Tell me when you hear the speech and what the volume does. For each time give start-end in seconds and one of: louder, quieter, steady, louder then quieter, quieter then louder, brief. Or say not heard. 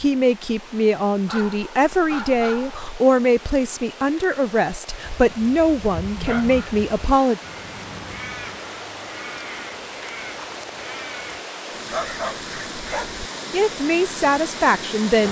0.0-7.4 steady
13.5-15.2 brief.